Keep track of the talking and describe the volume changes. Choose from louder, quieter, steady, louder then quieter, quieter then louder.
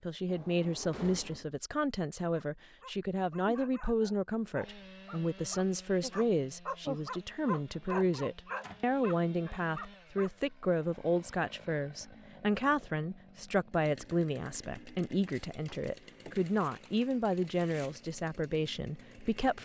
steady.